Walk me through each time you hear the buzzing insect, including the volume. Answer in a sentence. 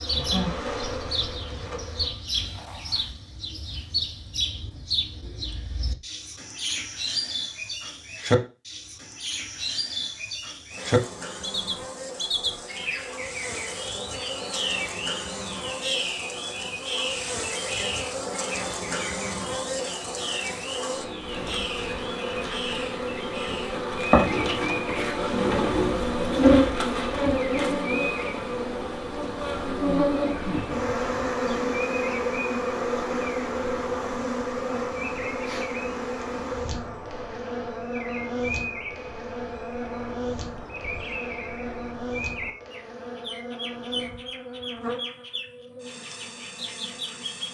The buzzing insect can be heard briefly from 0.0 to 2.1 s; and from 10.7 to 47.4 s, getting louder then quieter.